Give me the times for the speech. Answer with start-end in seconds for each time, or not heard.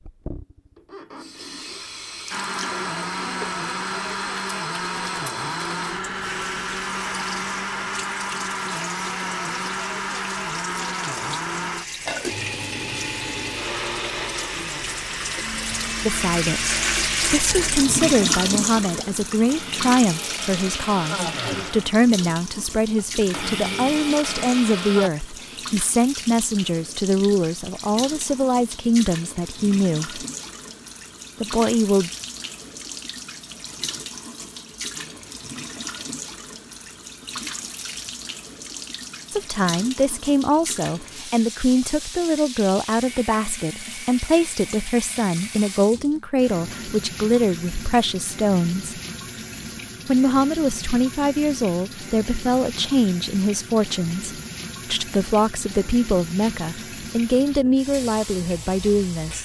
16.1-30.2, 31.4-32.1, 39.3-49.0, 50.0-59.3.